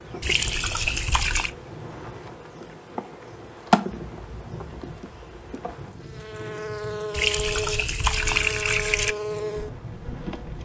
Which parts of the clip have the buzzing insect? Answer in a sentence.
The buzzing insect can be heard from 0.0 to 10.6 s.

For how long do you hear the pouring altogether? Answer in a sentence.
You can hear the pouring for 3 seconds altogether.